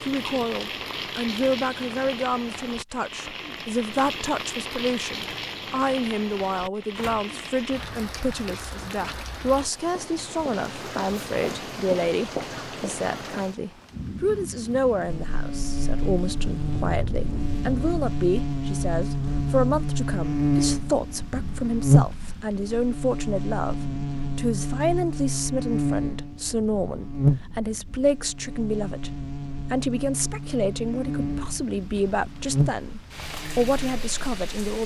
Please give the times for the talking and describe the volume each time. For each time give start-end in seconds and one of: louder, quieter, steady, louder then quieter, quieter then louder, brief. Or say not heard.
0.0-34.8 steady.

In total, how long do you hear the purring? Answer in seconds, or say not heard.
not heard.